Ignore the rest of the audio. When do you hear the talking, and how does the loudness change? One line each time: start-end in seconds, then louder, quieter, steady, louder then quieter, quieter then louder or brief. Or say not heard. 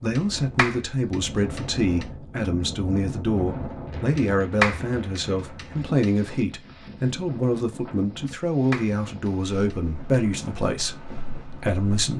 0.0-12.1 steady.